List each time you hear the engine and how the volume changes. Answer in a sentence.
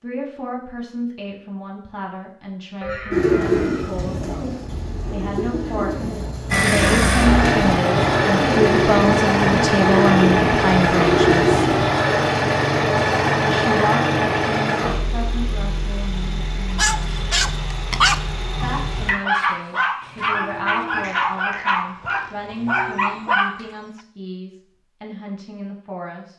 The engine can be heard from 6.5 to 19.1 s, getting quieter.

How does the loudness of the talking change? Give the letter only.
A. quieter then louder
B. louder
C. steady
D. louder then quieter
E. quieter
D.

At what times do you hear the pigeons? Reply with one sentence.
You can hear the pigeons from 3.1 to 11.8 s.